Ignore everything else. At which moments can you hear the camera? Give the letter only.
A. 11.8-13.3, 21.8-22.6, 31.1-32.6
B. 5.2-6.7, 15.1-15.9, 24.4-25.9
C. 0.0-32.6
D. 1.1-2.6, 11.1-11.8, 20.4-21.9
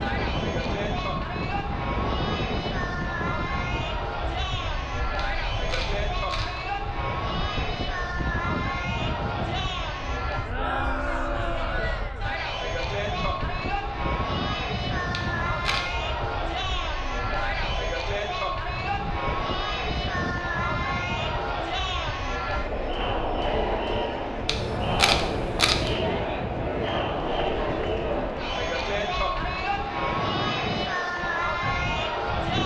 B.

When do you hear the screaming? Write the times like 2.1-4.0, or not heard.
not heard.